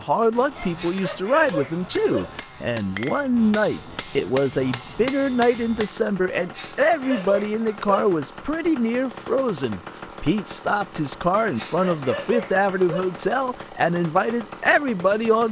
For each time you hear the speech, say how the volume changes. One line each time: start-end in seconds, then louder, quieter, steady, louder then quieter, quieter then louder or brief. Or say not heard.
0.0-15.4 steady.